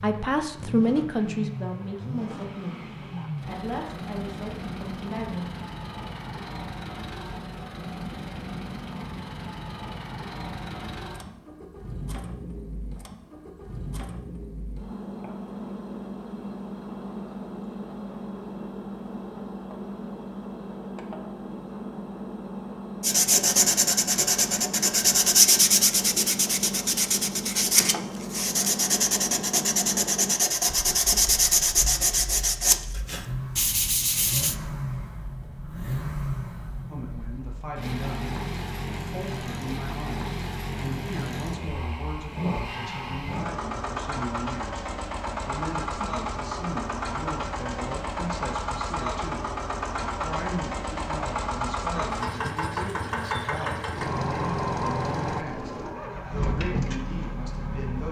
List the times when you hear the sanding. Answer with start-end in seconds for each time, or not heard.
23.0-34.5.